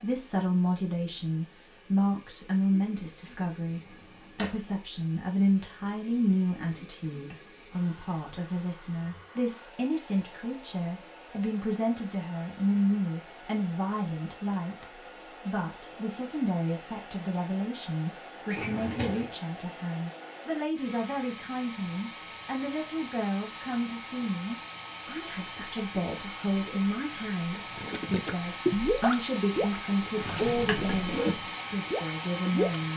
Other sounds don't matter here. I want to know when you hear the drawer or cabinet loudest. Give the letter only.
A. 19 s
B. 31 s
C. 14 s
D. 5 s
B.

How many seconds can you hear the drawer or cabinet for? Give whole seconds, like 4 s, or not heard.
3 s.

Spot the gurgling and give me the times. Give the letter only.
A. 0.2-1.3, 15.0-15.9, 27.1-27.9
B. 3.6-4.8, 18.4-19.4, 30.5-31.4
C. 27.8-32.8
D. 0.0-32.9
C.